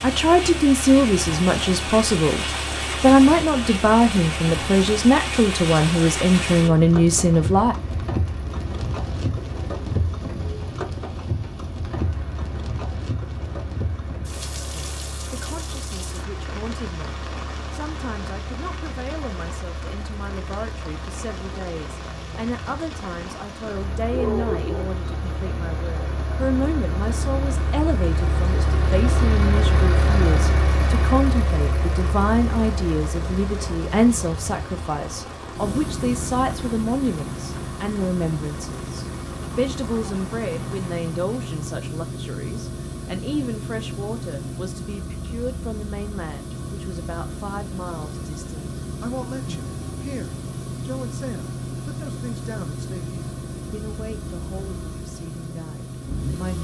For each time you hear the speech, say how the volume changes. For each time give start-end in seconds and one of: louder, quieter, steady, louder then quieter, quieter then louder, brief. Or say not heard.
0.0-7.8 steady
14.7-56.5 louder then quieter.